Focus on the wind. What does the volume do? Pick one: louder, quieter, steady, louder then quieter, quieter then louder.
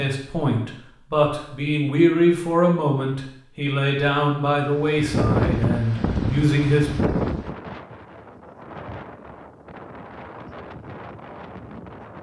quieter.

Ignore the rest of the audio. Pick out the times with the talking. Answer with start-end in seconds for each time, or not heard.
0.0-7.0.